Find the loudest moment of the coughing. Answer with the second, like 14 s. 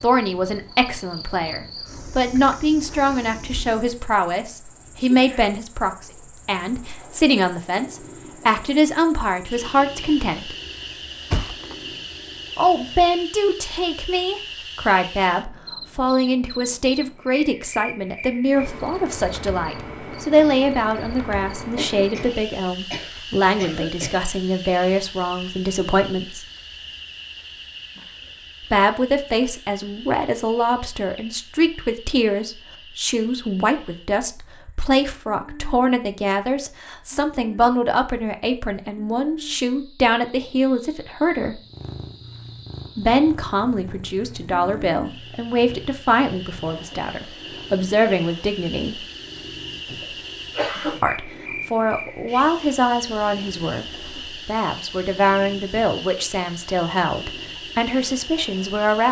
51 s.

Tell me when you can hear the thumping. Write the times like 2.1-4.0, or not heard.
11.3-11.8.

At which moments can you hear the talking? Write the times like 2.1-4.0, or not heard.
0.0-10.6, 12.6-26.4, 28.6-41.6, 43.0-49.0, 51.0-59.0.